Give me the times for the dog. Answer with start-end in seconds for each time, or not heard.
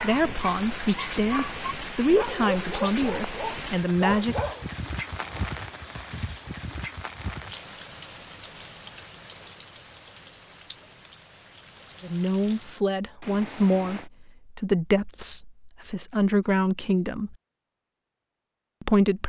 0.0-5.4.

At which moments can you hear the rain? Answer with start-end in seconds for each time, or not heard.
0.0-14.1.